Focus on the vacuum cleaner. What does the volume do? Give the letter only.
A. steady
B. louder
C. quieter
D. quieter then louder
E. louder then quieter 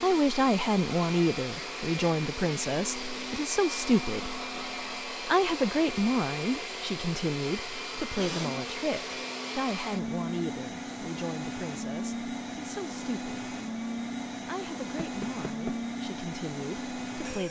A.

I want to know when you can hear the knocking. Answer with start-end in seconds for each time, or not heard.
15.0-15.8.